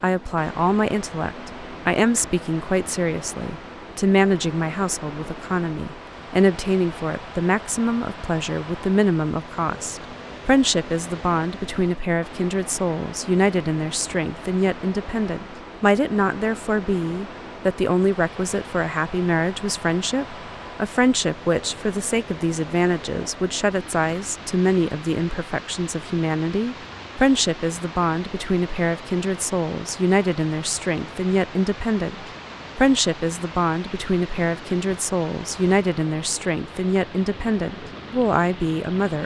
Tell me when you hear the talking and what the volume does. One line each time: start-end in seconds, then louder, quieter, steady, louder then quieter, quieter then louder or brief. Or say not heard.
0.0-39.2 steady.